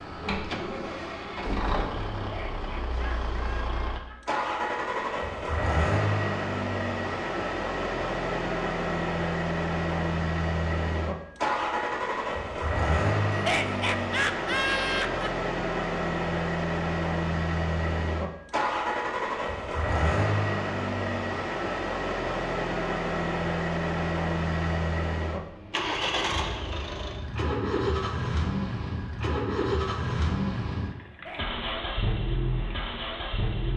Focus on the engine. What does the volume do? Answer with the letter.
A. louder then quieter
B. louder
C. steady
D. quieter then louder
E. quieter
C.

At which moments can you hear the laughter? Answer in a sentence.
You can hear the laughter from 2.2 to 4.2 s, from 13.3 to 15.3 s and from 31.1 to 31.6 s.